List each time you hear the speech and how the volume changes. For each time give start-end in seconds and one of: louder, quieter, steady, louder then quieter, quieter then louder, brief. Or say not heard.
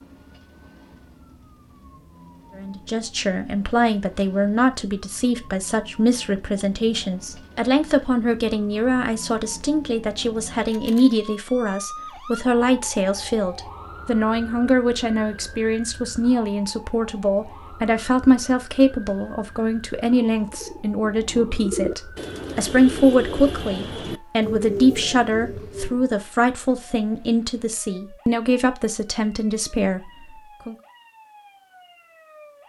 2.5-30.8 steady.